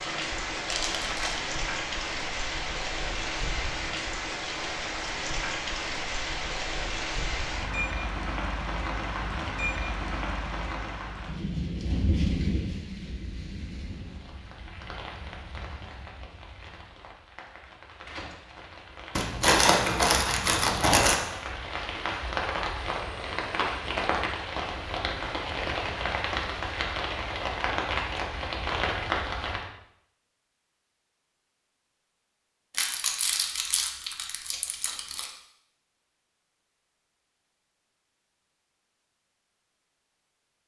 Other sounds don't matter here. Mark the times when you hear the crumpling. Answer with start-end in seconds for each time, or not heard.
0.7-1.4, 19.1-21.1, 32.7-35.3.